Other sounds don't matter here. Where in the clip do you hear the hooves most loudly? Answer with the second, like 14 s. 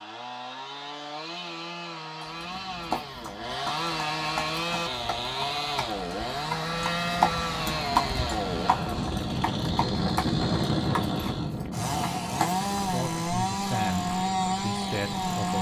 7 s.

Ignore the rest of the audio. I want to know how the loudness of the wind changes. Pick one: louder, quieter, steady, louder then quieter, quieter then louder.
louder then quieter.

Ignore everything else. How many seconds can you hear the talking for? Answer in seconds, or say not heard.
3 s.